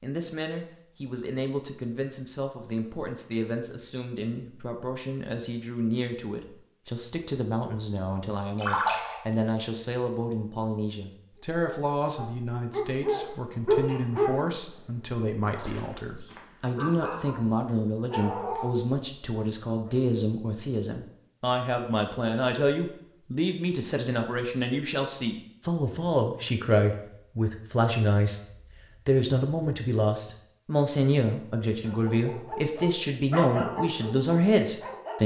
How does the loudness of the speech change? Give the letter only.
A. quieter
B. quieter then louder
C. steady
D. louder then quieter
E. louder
E.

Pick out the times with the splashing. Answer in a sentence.
The splashing can be heard from 8.6 to 9.7 s.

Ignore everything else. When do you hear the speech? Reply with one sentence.
The speech can be heard from 0.0 to 35.2 s.